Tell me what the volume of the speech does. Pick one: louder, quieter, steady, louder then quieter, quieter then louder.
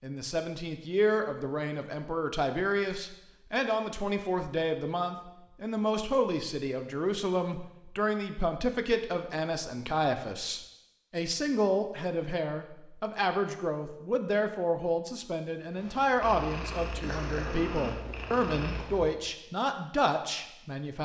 steady.